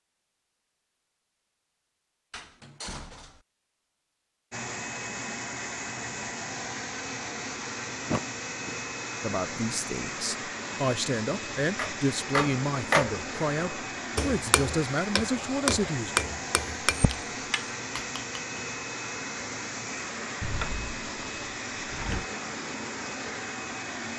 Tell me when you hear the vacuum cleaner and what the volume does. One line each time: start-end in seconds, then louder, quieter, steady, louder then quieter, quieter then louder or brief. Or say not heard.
4.5-24.1 steady.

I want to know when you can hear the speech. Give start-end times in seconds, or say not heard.
9.2-16.1.